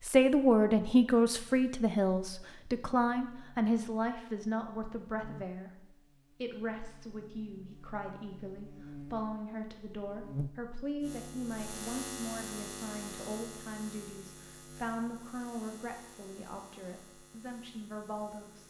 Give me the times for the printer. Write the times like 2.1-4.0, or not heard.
not heard.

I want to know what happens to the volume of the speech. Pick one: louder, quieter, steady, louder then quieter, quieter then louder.
quieter.